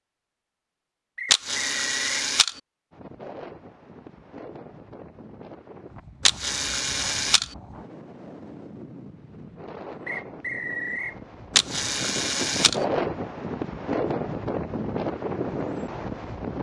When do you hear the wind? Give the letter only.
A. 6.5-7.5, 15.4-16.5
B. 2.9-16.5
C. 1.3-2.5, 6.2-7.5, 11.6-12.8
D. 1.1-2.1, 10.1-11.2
B.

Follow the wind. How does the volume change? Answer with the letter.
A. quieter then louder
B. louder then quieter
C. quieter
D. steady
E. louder
E.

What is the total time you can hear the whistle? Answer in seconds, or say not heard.
2 s.